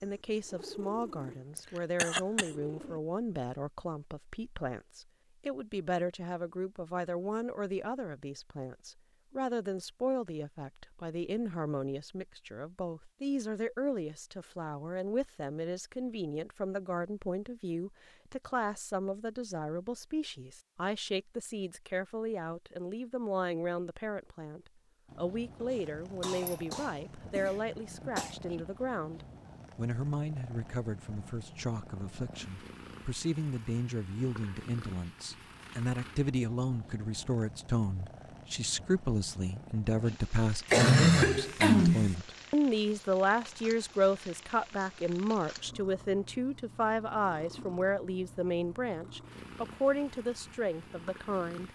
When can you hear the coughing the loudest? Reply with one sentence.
The volume of the coughing peaks at 41 seconds.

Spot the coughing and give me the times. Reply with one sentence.
The coughing can be heard from 1.6 to 2.5 s, from 25.6 to 28.4 s and from 40.7 to 42.1 s.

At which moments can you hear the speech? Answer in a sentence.
You can hear the speech from 0.0 to 51.7 s.